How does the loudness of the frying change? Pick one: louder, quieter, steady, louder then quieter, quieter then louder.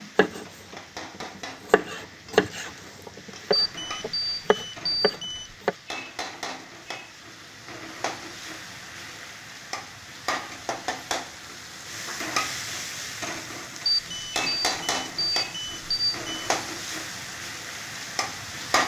louder.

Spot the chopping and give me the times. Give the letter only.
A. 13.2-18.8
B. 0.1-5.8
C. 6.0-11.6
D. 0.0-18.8
B.